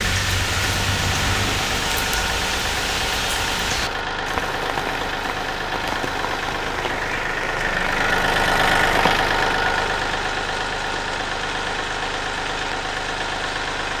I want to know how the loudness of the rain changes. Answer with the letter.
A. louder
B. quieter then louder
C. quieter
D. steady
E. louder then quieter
C.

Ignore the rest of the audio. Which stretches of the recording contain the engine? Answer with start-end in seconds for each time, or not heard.
0.0-13.9.